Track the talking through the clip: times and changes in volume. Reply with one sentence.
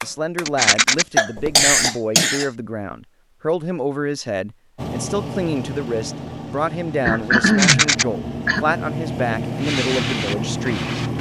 You can hear the talking from 0.0 to 10.9 s, at a steady volume.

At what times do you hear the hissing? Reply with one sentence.
You can hear the hissing from 9.5 to 11.1 s.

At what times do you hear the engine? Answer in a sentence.
The engine can be heard from 4.8 to 11.1 s.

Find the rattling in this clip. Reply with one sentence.
The rattling can be heard from 0.5 to 1.1 s and from 7.5 to 8.1 s.